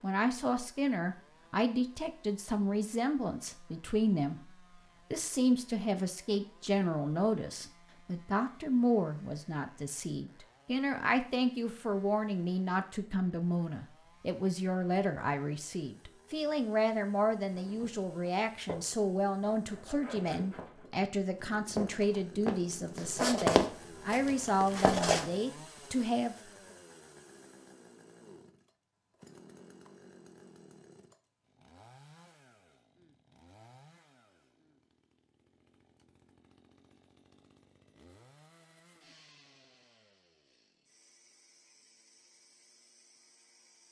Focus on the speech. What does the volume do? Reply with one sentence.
The volume of the speech stays about the same.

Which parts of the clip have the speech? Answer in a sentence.
You can hear the speech from 0.0 to 4.4 s and from 5.1 to 26.4 s.